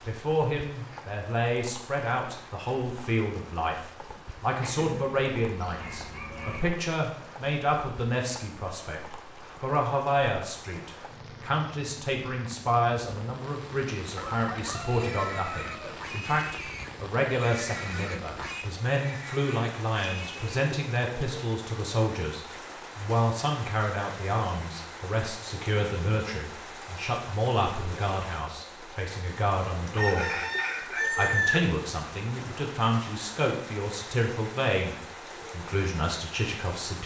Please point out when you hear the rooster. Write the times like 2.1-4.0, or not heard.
4.6-6.7, 14.2-16.1, 29.9-31.6.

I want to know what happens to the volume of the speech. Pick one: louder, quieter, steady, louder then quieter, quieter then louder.
steady.